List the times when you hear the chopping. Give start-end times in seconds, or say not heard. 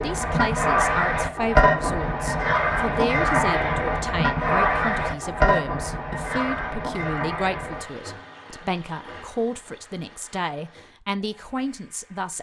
not heard.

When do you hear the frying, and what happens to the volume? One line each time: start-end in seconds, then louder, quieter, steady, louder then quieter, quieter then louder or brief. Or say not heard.
0.0-12.3 quieter.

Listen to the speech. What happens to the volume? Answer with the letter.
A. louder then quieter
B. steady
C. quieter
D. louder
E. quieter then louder
B.